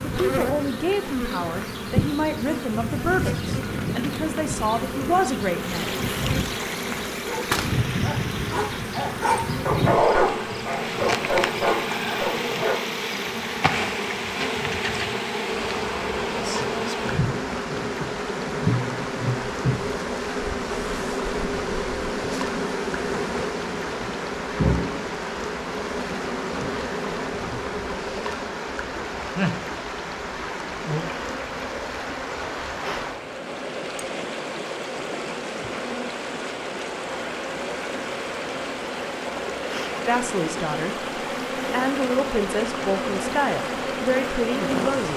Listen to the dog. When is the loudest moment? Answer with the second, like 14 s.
10 s.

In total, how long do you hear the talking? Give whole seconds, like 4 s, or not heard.
11 s.